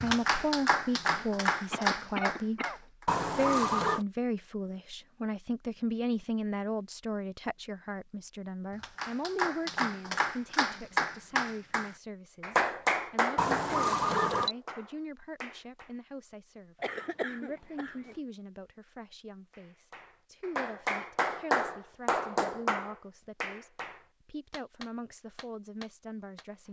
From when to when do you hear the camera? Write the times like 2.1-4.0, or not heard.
3.0-4.0, 13.3-14.6.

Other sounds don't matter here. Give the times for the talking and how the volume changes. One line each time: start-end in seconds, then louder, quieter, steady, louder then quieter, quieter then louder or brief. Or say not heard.
0.0-2.6 brief
3.4-26.6 quieter.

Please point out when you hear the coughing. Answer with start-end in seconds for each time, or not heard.
1.7-3.0, 16.8-18.1.